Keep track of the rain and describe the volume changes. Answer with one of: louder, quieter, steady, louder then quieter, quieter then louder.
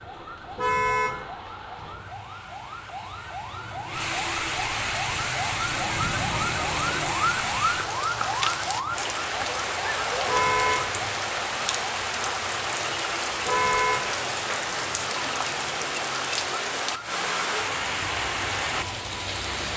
louder.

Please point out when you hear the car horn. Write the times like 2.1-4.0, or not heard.
0.6-1.2, 10.2-10.9, 13.4-14.1.